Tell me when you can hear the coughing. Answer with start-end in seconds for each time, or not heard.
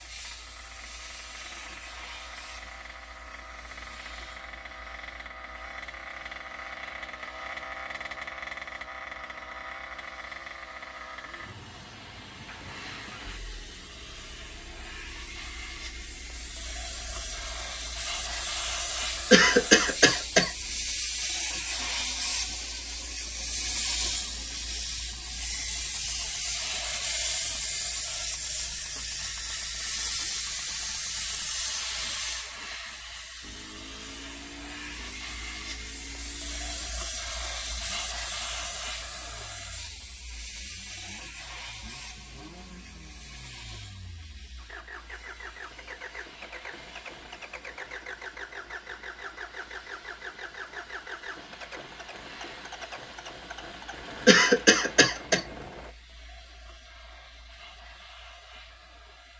19.3-20.5, 54.2-55.4.